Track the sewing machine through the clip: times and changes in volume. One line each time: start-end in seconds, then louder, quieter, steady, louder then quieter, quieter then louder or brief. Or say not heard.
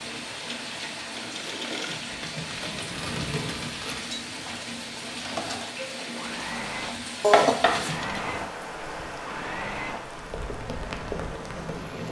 0.0-12.0 steady.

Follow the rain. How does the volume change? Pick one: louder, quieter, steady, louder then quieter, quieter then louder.
steady.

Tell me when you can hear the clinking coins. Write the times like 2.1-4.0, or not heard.
1.9-4.2, 7.4-8.2.